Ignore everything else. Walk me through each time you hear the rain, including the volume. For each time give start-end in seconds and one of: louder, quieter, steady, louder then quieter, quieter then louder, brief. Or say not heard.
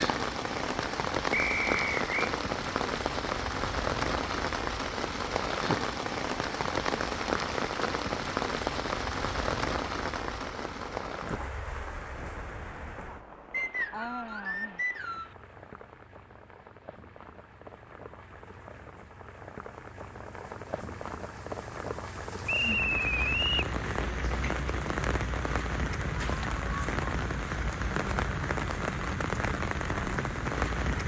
0.0-31.0 quieter then louder.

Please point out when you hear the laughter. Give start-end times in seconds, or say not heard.
not heard.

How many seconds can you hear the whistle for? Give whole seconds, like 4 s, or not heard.
4 s.